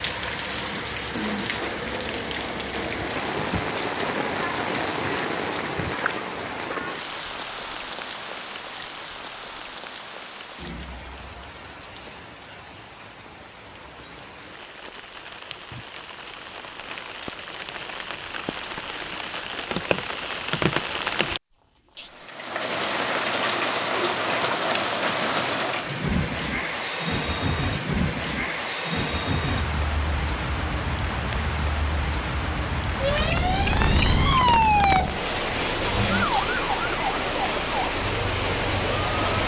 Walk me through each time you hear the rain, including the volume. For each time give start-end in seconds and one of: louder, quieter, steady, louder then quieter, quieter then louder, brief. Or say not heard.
0.0-39.4 quieter then louder.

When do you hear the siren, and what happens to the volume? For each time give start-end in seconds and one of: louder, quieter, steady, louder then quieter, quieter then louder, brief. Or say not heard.
33.0-39.4 quieter.